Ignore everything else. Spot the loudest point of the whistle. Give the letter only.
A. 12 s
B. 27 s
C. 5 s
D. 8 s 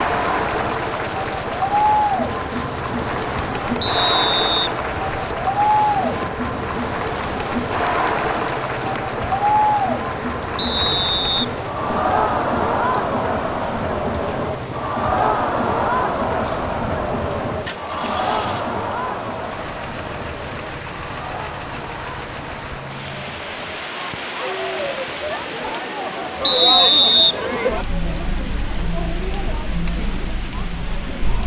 B.